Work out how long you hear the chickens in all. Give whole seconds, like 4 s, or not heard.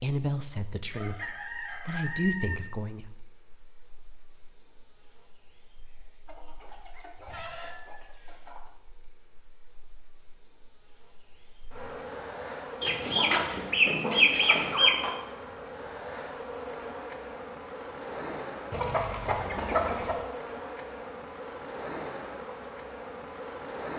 8 s.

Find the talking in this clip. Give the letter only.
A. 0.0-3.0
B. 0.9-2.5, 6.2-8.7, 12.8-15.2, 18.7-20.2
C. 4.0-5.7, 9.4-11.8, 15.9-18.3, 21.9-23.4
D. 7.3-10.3
A.